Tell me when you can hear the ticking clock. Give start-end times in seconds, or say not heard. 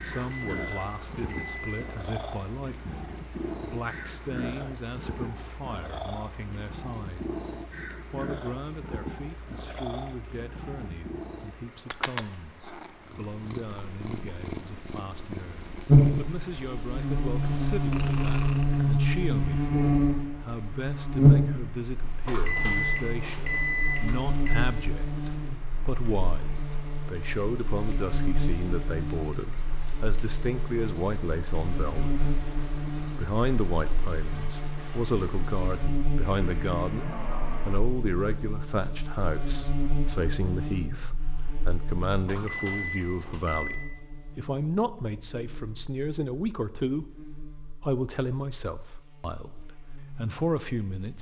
not heard.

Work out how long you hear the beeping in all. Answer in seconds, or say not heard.
6 s.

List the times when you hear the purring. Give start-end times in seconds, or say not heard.
0.0-18.9.